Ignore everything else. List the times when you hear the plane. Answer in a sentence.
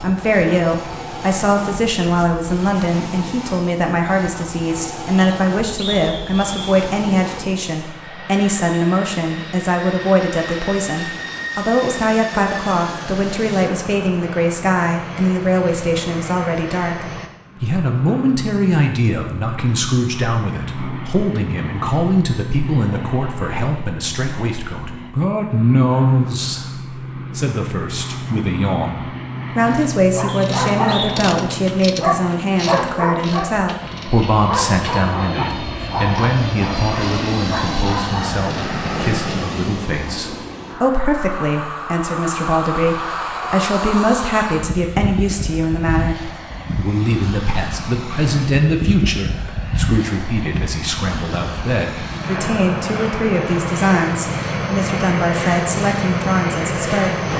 You can hear the plane from 0.0 to 57.3 s.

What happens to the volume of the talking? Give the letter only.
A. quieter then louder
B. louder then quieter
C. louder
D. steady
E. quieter
D.